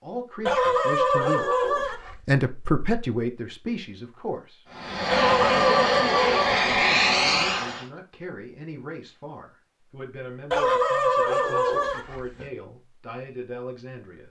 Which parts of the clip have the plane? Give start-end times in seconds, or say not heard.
4.7-7.8.